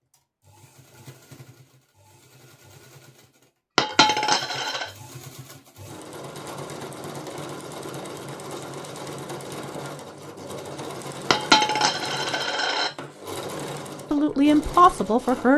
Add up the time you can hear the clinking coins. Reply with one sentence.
You can hear the clinking coins for 3 seconds altogether.